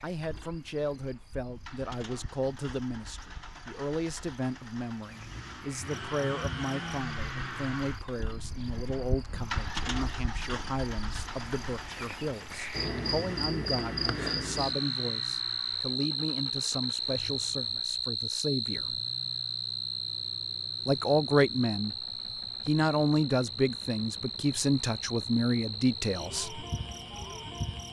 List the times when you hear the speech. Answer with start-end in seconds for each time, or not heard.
0.0-19.0, 20.9-21.9, 22.6-26.6.